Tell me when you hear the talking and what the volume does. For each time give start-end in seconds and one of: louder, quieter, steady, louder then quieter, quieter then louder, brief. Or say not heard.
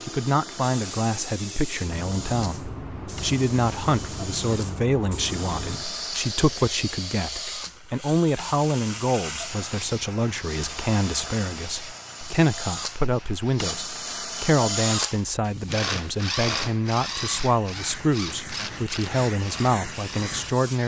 0.0-20.8 steady.